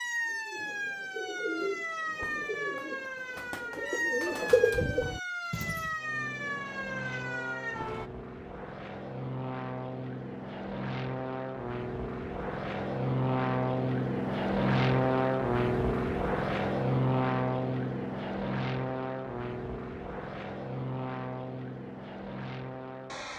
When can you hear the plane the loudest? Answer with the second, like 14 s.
15 s.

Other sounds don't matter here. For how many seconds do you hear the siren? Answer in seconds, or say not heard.
8 s.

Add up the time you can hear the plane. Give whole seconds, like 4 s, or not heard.
17 s.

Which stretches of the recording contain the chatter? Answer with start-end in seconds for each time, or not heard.
not heard.